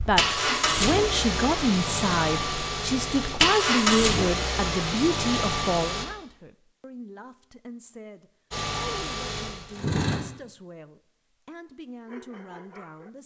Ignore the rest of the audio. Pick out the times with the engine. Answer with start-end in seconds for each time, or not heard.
0.0-6.0, 8.5-10.2.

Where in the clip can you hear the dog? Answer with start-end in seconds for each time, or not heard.
11.7-13.1.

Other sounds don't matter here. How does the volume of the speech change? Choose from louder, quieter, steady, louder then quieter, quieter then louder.
quieter.